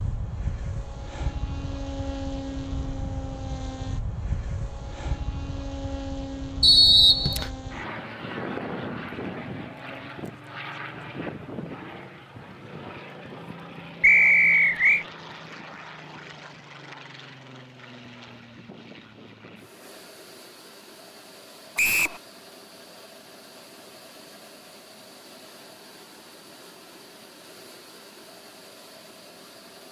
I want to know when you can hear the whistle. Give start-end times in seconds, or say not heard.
6.6-7.5, 14.0-15.1, 21.8-22.2.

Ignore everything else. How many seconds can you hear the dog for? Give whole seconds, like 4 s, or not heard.
not heard.